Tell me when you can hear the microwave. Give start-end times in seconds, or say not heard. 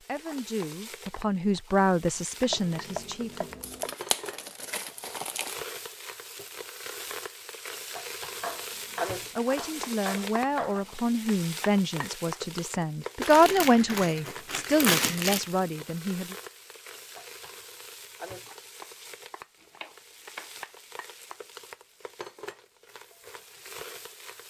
not heard.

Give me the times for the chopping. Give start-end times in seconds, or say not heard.
2.5-4.0, 8.3-10.9, 19.6-20.5.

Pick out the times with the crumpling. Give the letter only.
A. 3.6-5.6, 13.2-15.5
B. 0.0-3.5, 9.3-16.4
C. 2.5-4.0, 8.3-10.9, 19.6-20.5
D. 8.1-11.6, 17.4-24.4
A.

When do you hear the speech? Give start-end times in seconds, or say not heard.
0.0-3.5, 9.3-16.4.